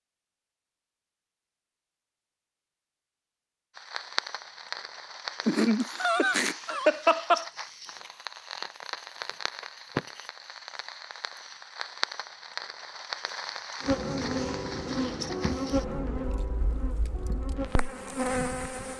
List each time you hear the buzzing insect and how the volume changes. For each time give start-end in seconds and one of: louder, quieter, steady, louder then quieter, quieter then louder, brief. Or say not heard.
13.8-18.9 quieter then louder.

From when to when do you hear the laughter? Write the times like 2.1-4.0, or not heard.
5.5-7.5.